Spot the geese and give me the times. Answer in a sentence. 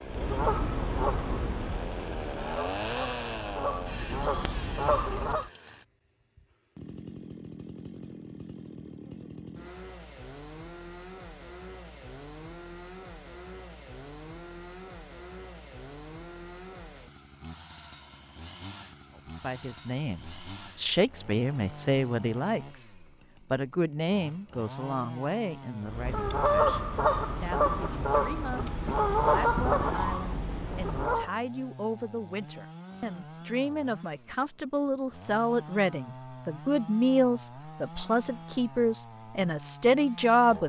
The geese can be heard from 0.0 to 5.5 s and from 25.9 to 31.3 s.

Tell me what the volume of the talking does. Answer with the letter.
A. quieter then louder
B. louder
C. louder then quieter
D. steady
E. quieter
A.